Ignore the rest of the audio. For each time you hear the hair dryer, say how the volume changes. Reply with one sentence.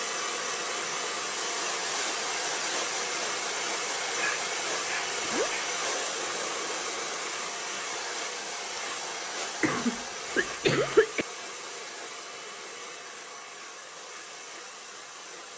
You can hear the hair dryer from 0.0 to 15.5 s, getting quieter.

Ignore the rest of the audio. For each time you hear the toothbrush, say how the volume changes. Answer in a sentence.
The toothbrush can't be heard in this clip.